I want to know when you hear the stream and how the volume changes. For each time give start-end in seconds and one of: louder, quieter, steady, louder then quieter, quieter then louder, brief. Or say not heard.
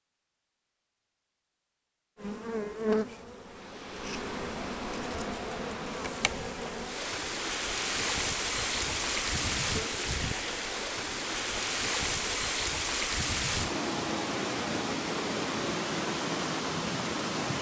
3.4-17.5 louder.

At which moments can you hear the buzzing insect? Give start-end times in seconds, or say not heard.
2.1-12.7.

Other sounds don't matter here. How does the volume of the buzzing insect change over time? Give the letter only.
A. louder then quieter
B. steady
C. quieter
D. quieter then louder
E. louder
C.